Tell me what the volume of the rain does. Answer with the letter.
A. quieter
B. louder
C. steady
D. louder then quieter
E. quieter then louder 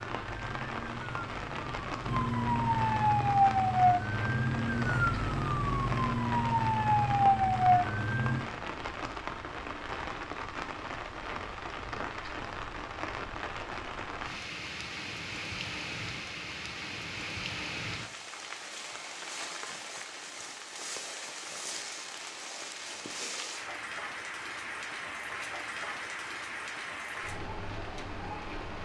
C.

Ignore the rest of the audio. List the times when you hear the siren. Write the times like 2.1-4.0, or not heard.
0.0-8.4.